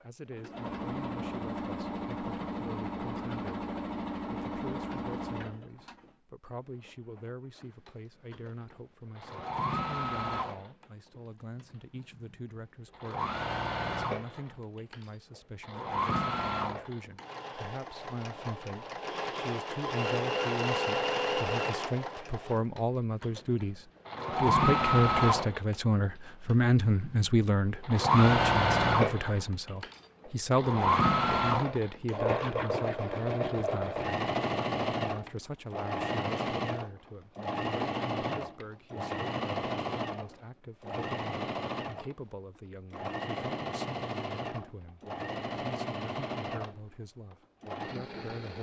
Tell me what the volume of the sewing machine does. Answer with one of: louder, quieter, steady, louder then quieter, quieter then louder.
louder then quieter.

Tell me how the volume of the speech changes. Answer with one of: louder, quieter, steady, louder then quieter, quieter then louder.
louder then quieter.